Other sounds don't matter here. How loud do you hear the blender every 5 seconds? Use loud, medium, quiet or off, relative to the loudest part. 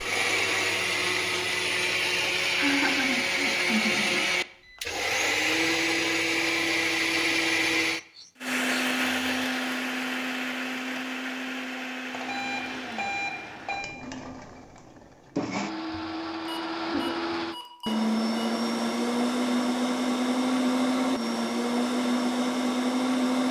loud, loud, medium, loud, loud.